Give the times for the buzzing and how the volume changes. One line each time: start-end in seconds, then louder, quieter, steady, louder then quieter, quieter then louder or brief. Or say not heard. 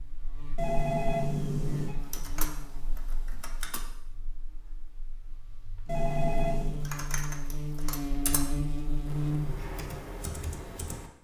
0.0-9.6 quieter then louder.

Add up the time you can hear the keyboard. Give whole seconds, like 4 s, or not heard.
6 s.